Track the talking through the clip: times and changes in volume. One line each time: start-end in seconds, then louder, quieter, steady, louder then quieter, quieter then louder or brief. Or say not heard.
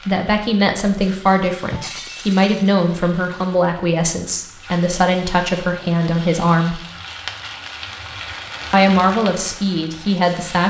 0.1-6.8 steady
8.7-10.6 brief.